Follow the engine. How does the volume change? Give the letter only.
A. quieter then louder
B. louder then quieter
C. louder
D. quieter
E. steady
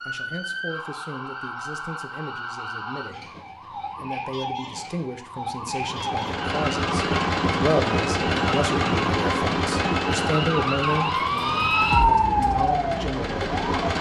D.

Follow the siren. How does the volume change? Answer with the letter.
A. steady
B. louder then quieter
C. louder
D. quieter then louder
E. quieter
C.